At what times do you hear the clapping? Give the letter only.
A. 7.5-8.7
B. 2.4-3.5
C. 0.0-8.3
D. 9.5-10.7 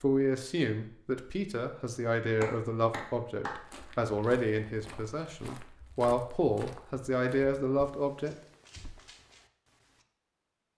B.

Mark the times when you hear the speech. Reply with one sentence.
You can hear the speech from 0.0 to 8.3 s.